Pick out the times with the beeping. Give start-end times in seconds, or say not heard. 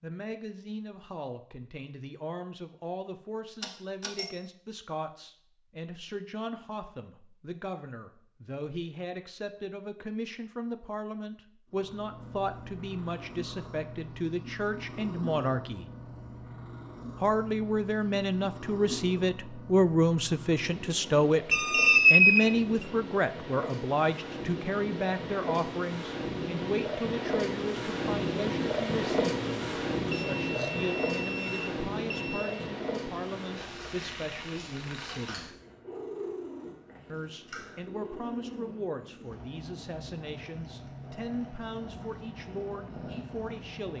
3.6-4.3, 21.5-22.9, 30.1-32.5.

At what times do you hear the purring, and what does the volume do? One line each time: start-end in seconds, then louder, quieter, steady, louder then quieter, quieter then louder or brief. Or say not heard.
11.7-43.9 louder then quieter.